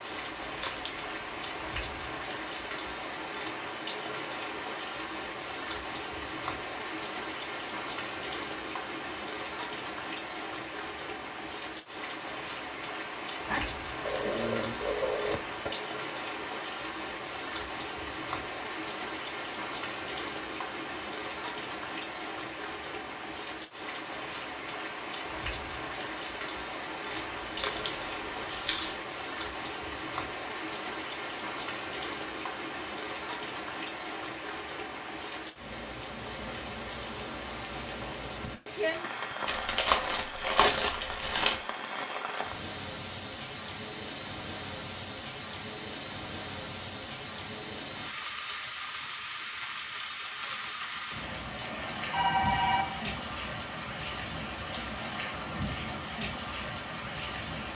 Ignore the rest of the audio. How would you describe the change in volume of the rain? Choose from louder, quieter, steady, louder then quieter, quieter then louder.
steady.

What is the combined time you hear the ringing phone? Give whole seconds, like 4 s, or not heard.
3 s.